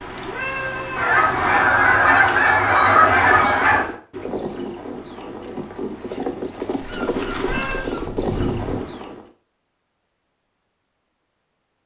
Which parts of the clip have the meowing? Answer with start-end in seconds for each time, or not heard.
0.0-1.9, 7.1-7.9.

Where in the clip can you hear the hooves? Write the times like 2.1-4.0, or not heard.
2.8-9.2.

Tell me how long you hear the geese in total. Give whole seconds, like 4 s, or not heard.
5 s.